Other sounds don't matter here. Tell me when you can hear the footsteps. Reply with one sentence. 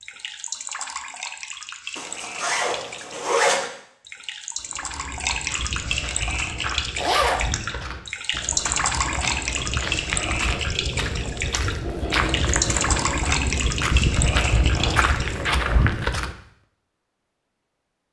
The footsteps can be heard from 4.5 to 16.4 s.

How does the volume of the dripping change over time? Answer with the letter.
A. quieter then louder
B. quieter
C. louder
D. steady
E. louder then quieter
C.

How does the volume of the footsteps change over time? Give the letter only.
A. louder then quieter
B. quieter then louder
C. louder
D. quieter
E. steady
C.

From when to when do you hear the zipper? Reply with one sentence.
The zipper can be heard from 1.9 to 3.7 s, from 7.0 to 7.5 s and from 14.7 to 15.9 s.